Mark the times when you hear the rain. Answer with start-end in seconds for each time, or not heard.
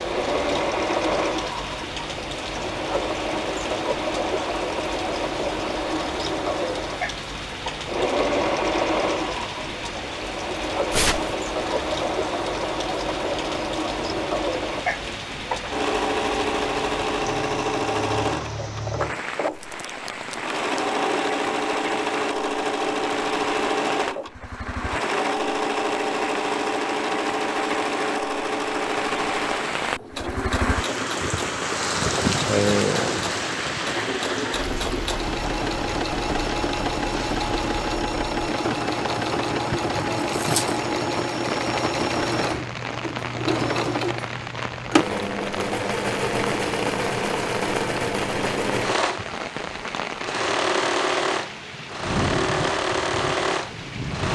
0.0-54.3.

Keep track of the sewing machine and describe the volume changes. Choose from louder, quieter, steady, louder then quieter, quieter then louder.
steady.